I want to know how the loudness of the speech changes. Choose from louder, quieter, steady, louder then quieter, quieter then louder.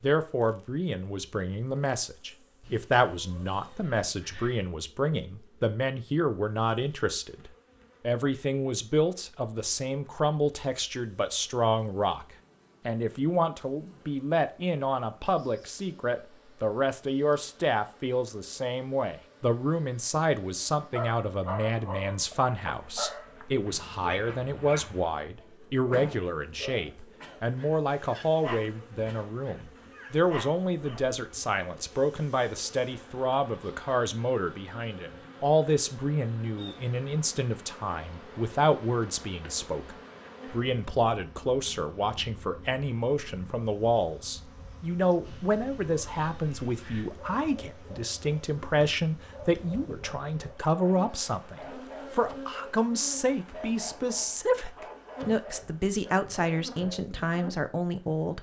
steady.